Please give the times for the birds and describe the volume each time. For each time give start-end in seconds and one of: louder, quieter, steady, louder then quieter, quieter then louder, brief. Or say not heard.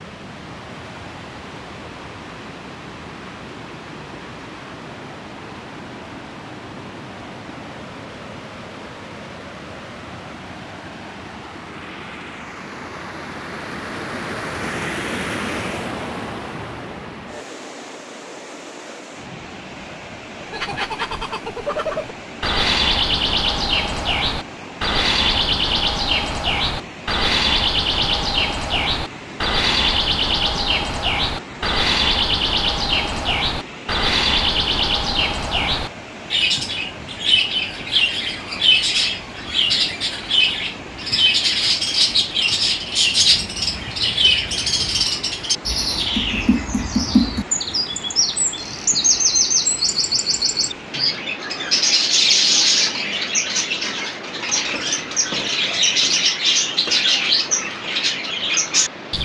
20.4-59.2 steady.